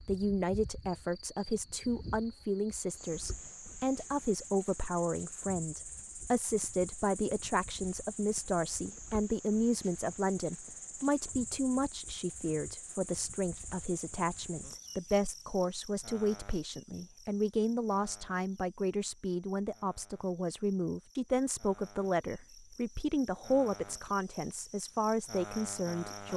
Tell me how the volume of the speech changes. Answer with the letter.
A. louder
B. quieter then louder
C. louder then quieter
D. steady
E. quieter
D.